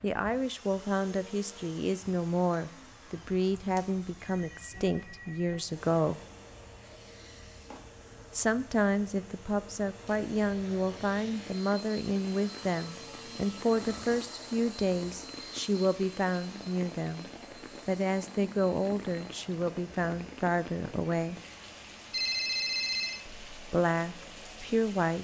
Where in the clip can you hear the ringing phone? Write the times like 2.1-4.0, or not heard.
4.2-5.7, 12.6-14.4, 22.1-23.2.